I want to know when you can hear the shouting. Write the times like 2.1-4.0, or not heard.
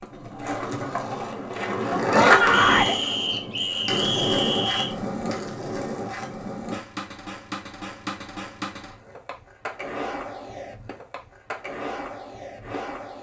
2.0-3.0.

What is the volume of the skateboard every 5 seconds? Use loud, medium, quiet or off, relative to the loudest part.
loud, medium, medium.